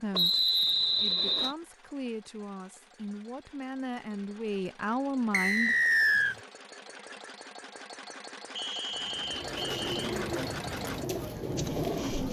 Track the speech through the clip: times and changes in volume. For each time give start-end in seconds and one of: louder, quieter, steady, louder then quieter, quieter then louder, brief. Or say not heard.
0.0-5.8 louder.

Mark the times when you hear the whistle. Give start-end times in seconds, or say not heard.
0.1-1.6, 5.3-6.3, 8.6-10.2.